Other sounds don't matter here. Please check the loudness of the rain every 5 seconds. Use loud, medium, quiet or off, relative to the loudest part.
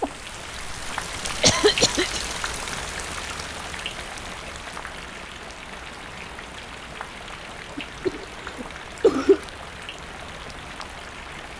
loud, medium, medium.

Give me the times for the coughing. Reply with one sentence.
The coughing can be heard from 1.4 to 2.2 s and from 7.8 to 9.4 s.